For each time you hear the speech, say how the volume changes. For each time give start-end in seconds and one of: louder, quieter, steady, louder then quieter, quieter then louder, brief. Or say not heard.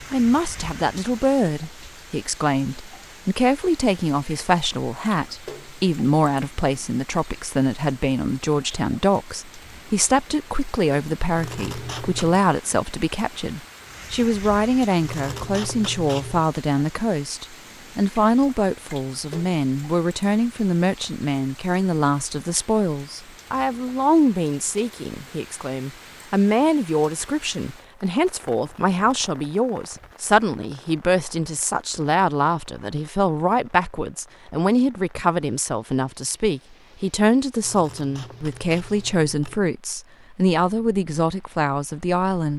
0.1-42.5 steady.